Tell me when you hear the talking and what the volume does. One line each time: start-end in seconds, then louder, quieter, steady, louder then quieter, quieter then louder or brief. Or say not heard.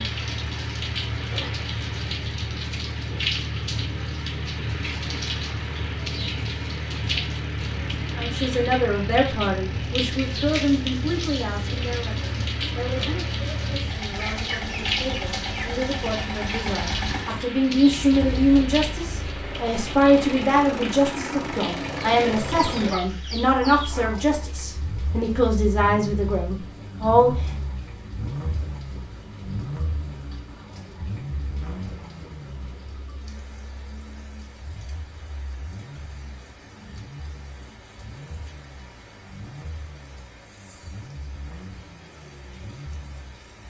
8.1-27.5 quieter then louder.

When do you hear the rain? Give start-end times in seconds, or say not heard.
0.0-43.6.